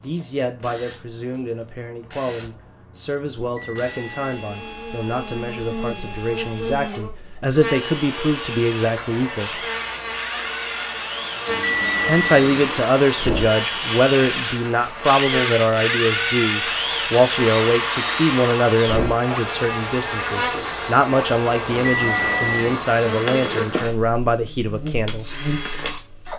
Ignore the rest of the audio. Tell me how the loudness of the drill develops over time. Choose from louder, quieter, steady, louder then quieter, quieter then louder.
louder then quieter.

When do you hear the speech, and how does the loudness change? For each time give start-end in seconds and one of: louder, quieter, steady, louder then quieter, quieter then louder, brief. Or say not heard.
0.0-9.6 louder
12.1-25.3 steady.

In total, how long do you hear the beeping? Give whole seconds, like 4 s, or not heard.
4 s.